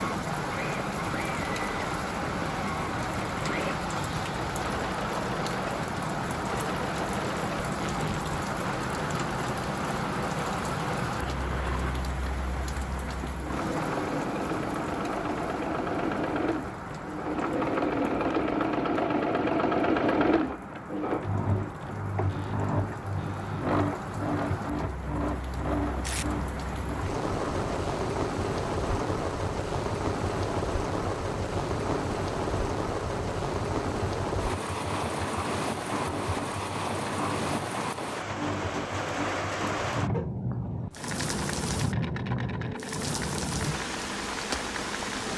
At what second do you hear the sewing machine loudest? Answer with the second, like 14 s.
20 s.